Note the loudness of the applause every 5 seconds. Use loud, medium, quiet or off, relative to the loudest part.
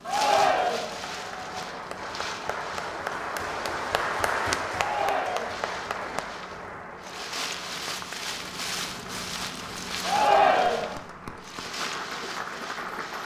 loud, medium, medium.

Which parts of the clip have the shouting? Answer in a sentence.
You can hear the shouting from 0.1 to 0.9 s, from 4.7 to 5.7 s and from 10.0 to 10.9 s.